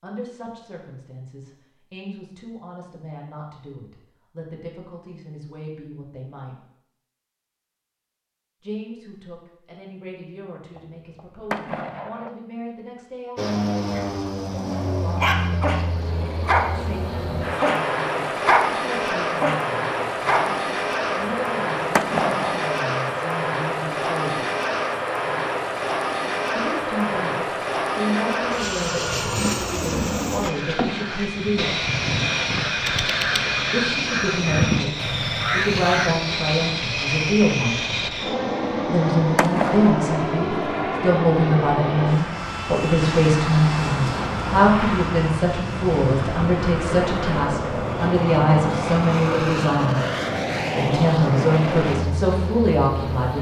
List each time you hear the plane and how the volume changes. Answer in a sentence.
You can hear the plane from 13.3 to 53.3 s, at a steady volume.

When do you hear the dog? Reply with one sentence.
You can hear the dog from 13.9 to 16.7 s, from 17.6 to 18.6 s and from 19.4 to 20.4 s.